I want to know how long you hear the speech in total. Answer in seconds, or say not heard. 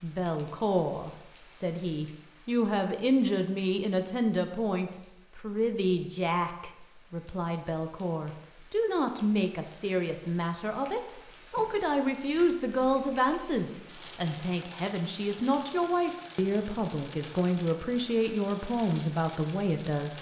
20 s.